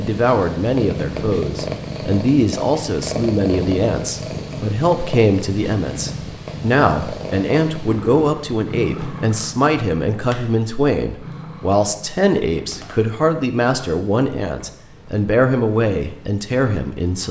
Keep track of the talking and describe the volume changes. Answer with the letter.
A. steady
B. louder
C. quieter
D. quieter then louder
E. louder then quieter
A.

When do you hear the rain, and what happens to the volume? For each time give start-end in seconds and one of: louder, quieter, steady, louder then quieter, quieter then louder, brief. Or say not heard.
not heard.